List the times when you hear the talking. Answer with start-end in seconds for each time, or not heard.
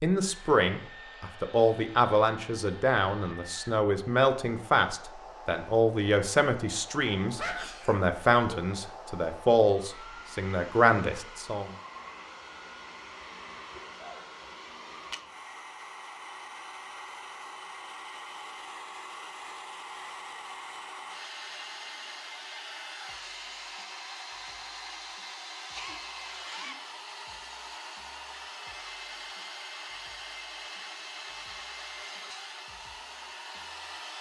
0.0-11.7.